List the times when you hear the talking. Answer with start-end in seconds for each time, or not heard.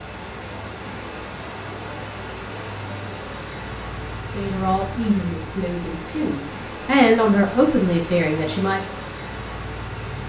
4.3-8.8.